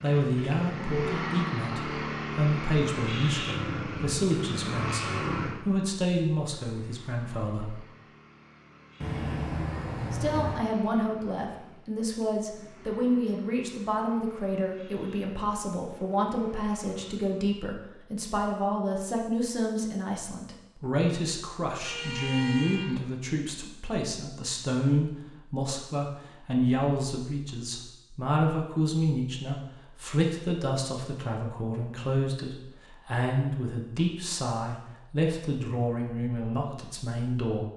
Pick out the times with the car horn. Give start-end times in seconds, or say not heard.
9.0-10.6, 21.8-23.0.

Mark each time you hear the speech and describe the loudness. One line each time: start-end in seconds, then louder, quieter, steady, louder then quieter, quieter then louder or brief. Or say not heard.
0.0-7.7 steady
10.1-37.6 steady.